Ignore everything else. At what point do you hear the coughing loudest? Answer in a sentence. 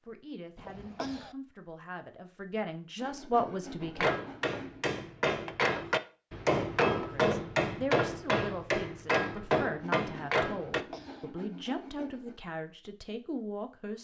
The loudest moment of the coughing is at 1 second.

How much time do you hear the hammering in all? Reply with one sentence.
You can hear the hammering for 7 seconds altogether.